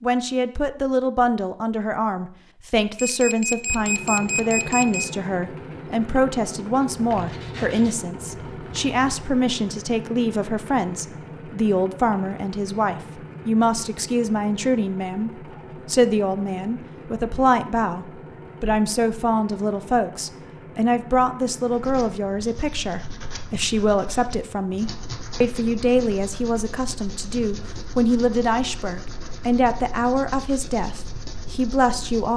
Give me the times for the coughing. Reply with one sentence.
The coughing can't be heard in this clip.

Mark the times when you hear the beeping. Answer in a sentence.
You can hear the beeping from 3.0 to 5.0 s.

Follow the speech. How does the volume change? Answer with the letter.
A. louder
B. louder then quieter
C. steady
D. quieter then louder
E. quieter
C.